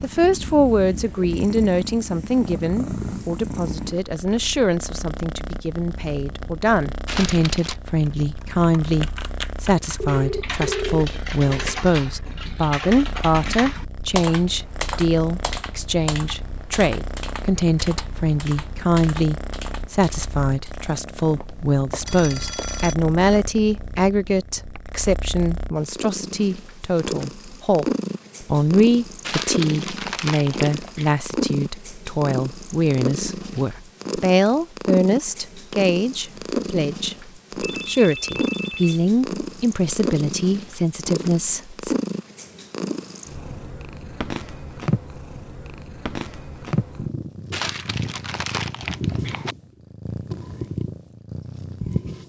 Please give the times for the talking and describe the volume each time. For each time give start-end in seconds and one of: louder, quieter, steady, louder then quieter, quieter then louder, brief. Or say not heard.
0.0-42.0 steady.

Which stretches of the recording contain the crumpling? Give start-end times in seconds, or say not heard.
7.0-7.8, 29.2-31.1, 47.5-49.5.